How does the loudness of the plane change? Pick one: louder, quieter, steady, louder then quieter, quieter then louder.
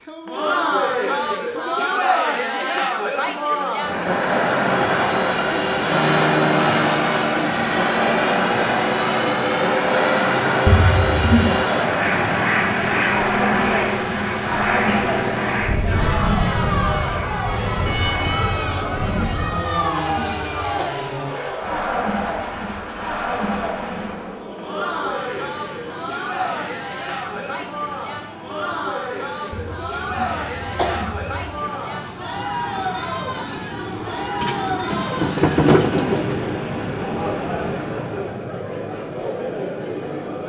quieter then louder.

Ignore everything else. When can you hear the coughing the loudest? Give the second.
11 s.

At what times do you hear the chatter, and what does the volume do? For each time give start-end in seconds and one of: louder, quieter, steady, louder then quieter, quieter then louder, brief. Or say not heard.
0.1-40.4 quieter.